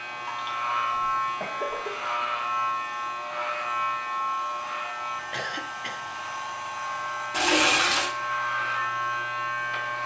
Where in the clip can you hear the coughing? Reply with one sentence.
The coughing can be heard from 1.2 to 2.2 s and from 5.3 to 6.0 s.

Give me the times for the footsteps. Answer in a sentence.
You can't hear the footsteps here.